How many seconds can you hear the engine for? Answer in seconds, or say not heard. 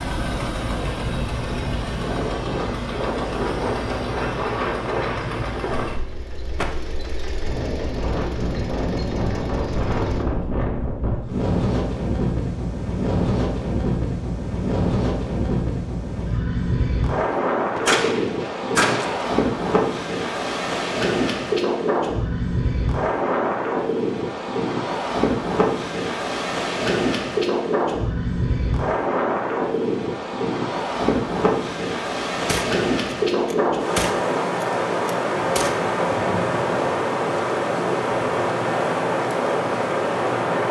10 s.